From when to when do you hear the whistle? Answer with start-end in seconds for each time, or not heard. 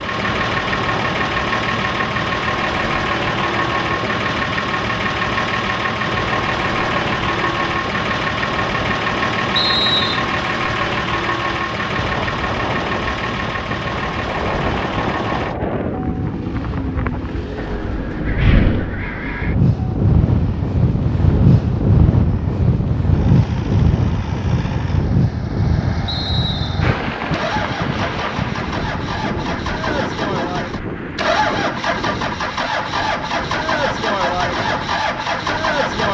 9.6-10.2, 26.1-26.9.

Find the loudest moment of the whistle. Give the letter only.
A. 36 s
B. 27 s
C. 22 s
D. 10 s
D.